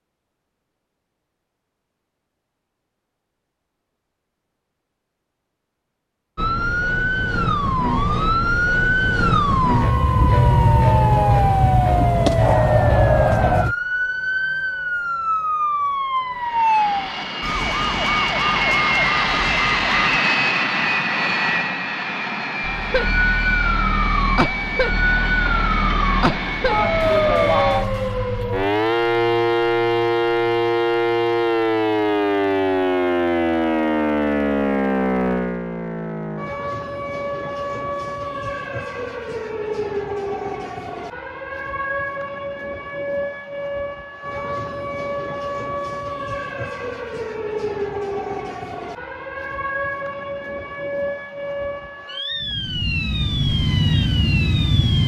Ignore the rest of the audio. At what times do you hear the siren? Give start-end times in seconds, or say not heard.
6.3-20.2, 22.6-55.0.